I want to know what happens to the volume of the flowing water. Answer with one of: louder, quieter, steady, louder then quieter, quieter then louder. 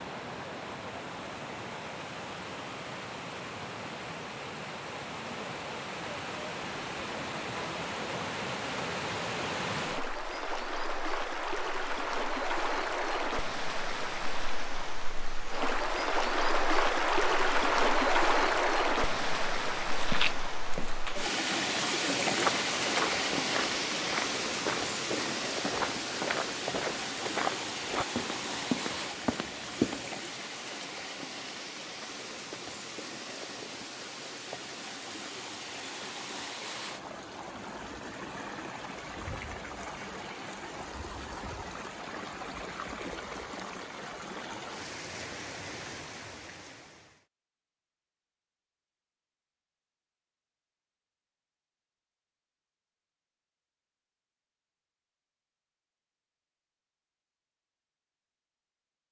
louder then quieter.